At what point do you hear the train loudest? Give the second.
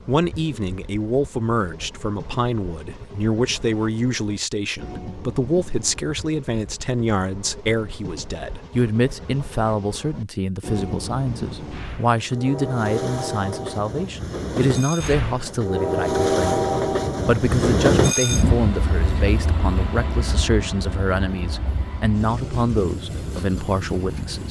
18 s.